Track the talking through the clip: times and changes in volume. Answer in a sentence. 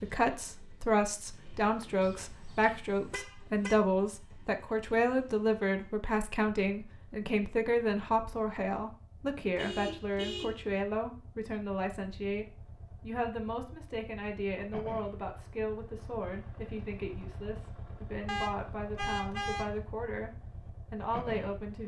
You can hear the talking from 0.0 to 20.3 s, getting quieter; and briefly from 20.9 to 21.8 s.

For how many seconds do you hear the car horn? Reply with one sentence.
You can hear the car horn for 4 seconds altogether.